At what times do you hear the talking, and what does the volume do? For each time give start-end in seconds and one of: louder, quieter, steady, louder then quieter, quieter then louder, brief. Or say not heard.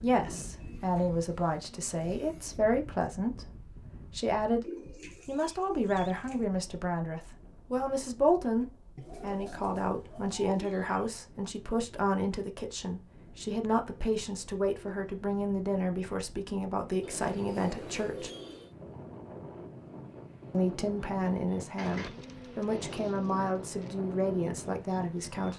0.0-18.3 steady
20.5-25.5 steady.